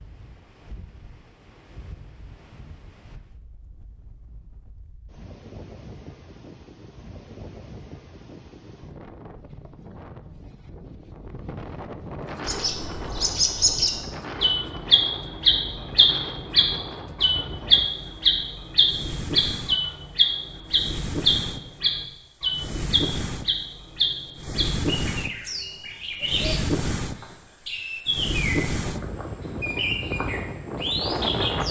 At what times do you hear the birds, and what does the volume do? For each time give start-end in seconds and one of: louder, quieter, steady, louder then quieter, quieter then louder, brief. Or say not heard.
12.4-31.6 quieter.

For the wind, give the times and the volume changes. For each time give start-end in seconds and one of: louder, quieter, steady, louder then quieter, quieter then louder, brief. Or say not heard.
0.0-31.6 louder.